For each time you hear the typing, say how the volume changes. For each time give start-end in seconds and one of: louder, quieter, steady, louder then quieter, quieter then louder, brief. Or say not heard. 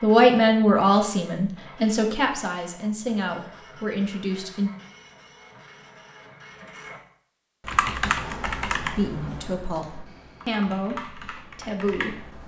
7.7-12.4 quieter then louder.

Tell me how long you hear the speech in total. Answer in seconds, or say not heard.
8 s.